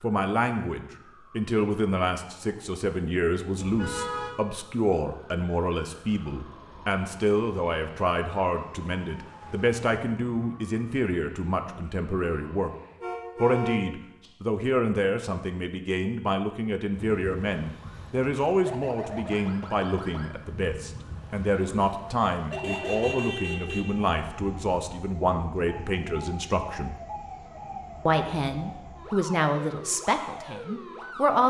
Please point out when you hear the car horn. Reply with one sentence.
You can hear the car horn from 3.5 to 4.3 s, from 13.0 to 14.3 s and from 22.5 to 23.9 s.